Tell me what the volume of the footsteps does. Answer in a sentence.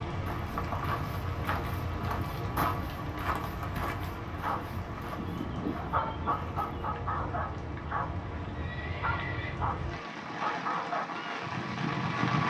The loudness of the footsteps goes down.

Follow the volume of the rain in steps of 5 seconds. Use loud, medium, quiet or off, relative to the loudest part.
medium, medium, loud.